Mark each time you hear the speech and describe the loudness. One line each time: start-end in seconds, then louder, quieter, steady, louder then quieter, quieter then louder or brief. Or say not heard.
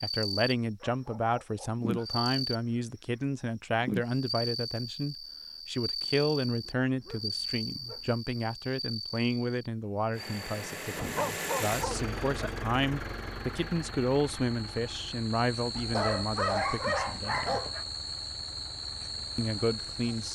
0.0-17.6 steady
19.4-20.2 brief.